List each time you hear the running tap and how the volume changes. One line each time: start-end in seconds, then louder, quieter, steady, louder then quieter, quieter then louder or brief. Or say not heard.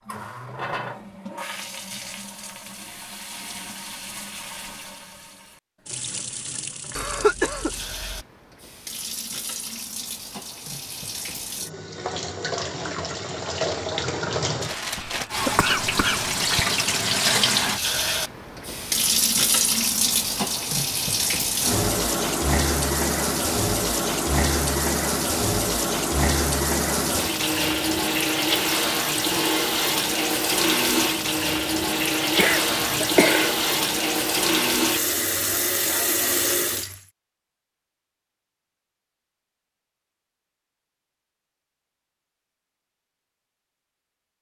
0.0-37.0 louder.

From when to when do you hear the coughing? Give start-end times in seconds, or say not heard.
7.0-8.2, 14.9-16.6, 32.4-33.5.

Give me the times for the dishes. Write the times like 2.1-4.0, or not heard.
not heard.